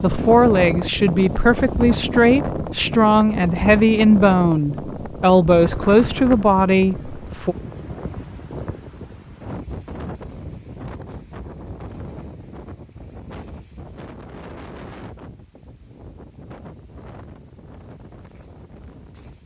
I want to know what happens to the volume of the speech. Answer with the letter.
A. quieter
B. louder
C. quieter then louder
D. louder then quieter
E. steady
E.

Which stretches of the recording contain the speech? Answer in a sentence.
You can hear the speech from 0.0 to 7.5 s.